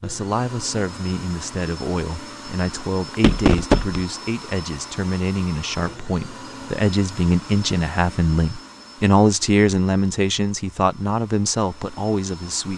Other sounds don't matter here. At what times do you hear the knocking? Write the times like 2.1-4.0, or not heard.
3.1-4.0.